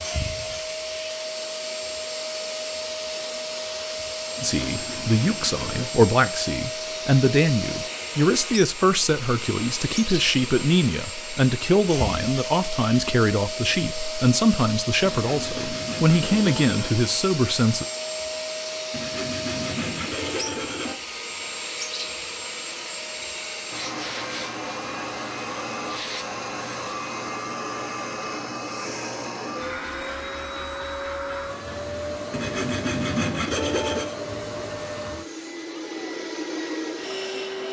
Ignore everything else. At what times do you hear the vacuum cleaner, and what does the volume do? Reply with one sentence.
You can hear the vacuum cleaner from 0.0 to 37.6 s, at a steady volume.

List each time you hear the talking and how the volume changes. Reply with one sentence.
The talking can be heard from 4.4 to 17.9 s, at a steady volume.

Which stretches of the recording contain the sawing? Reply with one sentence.
The sawing can be heard from 4.3 to 5.9 s, from 15.0 to 16.9 s, from 18.9 to 20.9 s and from 32.3 to 34.1 s.